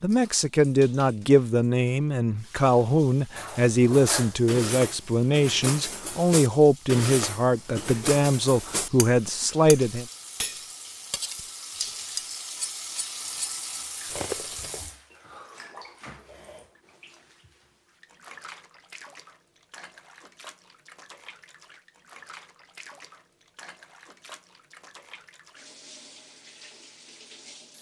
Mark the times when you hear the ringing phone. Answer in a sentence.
The ringing phone can't be heard in this clip.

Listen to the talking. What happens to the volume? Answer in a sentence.
The loudness of the talking stays about the same.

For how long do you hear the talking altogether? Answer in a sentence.
The talking can be heard for 10 seconds in total.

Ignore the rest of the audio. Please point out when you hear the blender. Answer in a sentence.
The blender can't be heard in this clip.